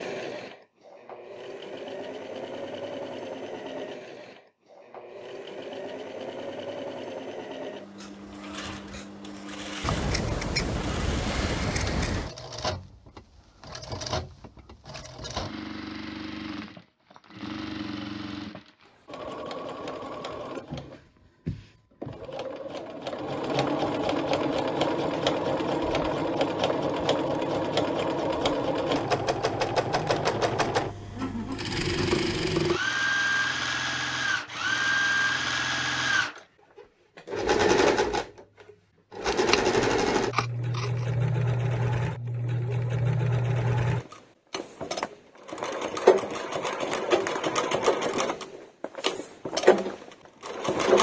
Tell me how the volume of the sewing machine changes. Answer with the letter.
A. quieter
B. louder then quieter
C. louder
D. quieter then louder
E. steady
C.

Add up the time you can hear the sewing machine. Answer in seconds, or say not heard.
51 s.